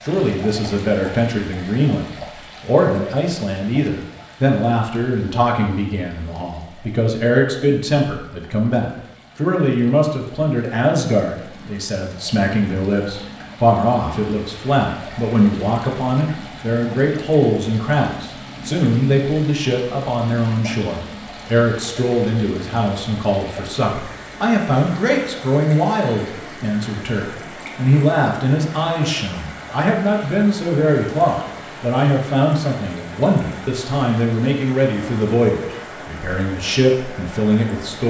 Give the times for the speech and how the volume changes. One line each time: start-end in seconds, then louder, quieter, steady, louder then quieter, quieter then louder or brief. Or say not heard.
0.0-38.0 steady.